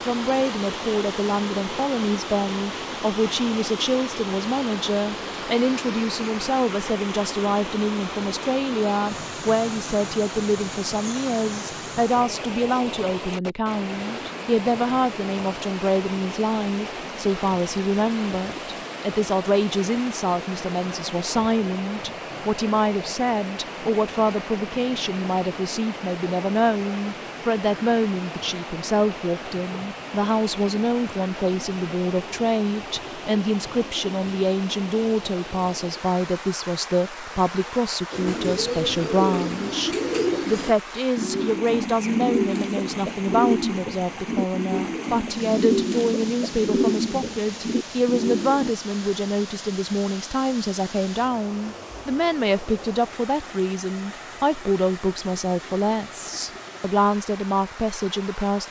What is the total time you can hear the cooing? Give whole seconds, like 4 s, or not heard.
11 s.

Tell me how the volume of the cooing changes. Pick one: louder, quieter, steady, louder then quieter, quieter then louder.
steady.